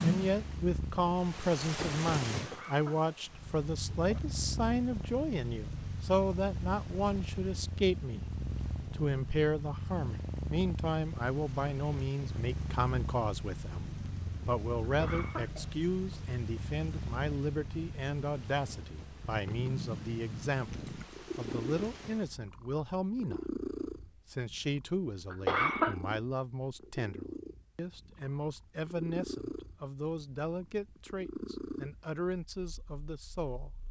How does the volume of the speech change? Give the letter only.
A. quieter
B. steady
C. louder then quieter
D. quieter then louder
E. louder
A.